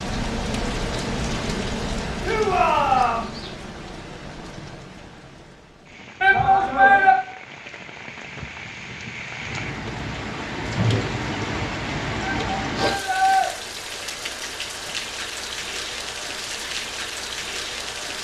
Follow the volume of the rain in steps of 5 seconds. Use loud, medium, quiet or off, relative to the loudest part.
loud, medium, loud, loud.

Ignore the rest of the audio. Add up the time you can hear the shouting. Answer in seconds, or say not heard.
3 s.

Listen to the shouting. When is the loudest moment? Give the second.
7 s.